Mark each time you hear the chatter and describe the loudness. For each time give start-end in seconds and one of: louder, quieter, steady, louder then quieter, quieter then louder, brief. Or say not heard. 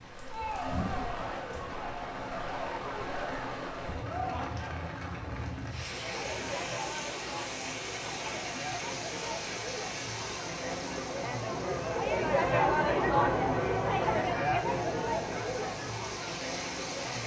0.1-17.2 louder.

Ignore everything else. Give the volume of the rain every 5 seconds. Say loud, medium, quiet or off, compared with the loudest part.
loud, loud, medium, loud.